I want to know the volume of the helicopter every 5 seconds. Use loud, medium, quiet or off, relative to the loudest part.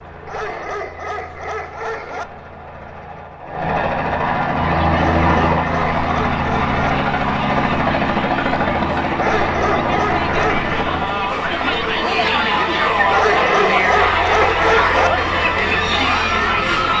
medium, loud, medium, quiet.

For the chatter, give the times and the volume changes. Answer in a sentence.
You can hear the chatter from 4.5 to 16.9 s, getting louder.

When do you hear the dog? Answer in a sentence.
You can hear the dog from 0.2 to 2.2 s, from 4.9 to 6.8 s, from 9.2 to 10.8 s and from 13.1 to 15.1 s.